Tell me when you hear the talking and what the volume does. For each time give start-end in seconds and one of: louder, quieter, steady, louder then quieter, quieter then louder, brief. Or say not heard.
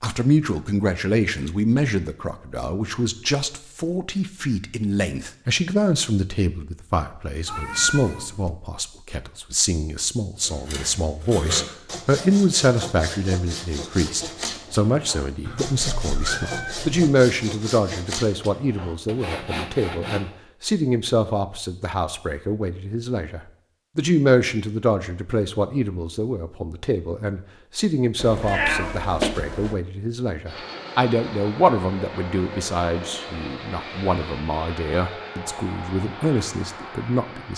0.0-37.5 steady.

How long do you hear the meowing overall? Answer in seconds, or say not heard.
4 s.